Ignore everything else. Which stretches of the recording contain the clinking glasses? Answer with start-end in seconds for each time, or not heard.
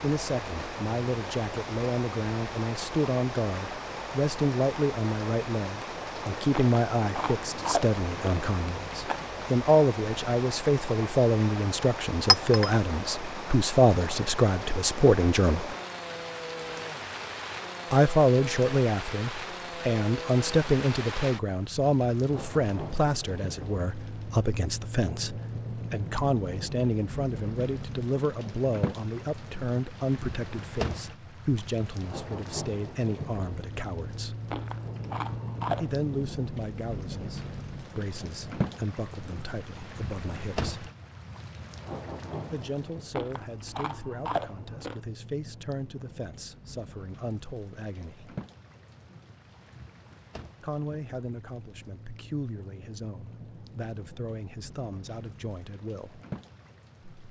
12.2-12.7.